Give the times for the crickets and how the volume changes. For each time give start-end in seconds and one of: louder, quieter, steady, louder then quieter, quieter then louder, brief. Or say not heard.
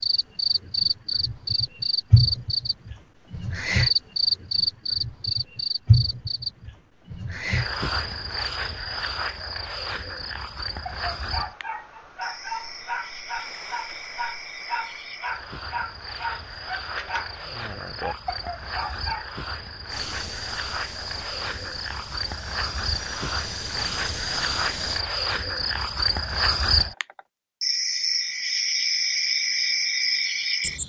0.0-30.8 quieter then louder.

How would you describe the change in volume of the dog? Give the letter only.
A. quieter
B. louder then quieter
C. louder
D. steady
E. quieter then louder
D.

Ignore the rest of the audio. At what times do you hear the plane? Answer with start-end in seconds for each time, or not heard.
19.9-25.1.